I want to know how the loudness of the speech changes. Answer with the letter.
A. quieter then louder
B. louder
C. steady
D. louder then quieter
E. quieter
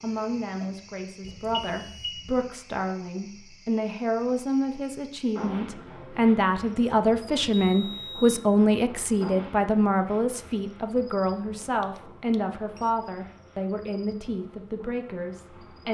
D.